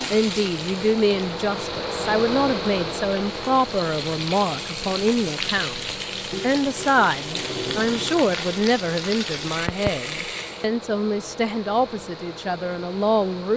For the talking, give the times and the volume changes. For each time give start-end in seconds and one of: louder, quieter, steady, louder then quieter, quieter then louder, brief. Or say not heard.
0.1-13.5 steady.